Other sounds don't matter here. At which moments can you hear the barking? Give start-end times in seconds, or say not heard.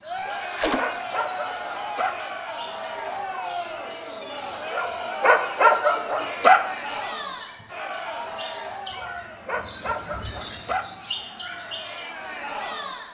0.2-2.1, 4.7-6.7, 8.9-10.9.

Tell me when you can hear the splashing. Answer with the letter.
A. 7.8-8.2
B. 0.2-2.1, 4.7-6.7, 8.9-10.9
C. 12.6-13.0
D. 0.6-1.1
D.